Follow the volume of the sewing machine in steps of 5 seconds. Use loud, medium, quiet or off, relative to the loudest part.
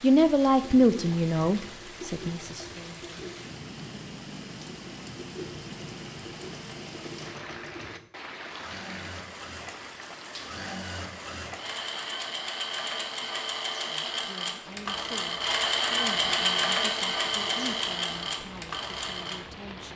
quiet, quiet, medium, loud.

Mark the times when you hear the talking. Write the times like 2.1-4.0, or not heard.
0.0-3.1, 13.8-19.9.